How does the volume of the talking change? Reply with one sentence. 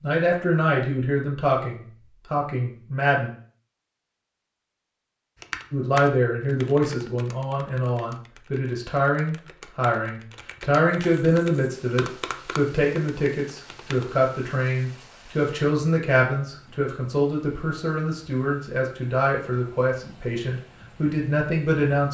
The loudness of the talking stays about the same.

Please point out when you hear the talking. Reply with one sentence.
The talking can be heard from 0.0 to 3.3 s and from 5.7 to 22.0 s.